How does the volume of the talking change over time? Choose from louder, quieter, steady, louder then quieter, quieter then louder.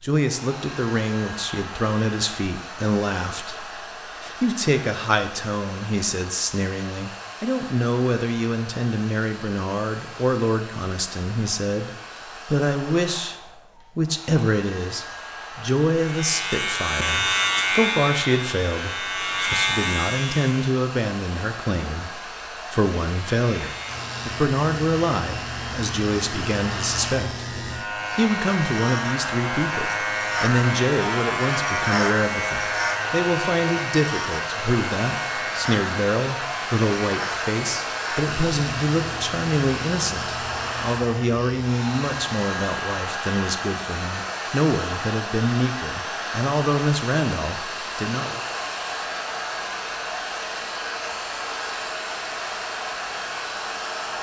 steady.